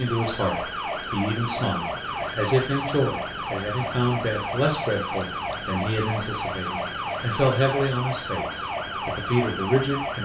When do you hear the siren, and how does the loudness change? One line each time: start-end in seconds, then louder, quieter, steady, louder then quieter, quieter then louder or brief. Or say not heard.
0.0-10.1 steady.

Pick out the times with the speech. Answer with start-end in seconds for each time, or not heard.
0.0-10.1.